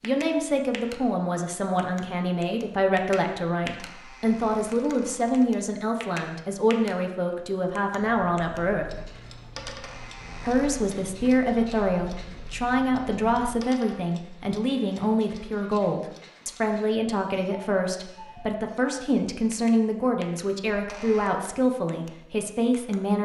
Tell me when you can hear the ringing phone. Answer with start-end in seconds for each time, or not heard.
not heard.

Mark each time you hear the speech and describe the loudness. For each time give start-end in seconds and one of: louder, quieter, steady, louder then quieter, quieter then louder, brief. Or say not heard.
0.0-8.9 steady
10.4-23.1 steady.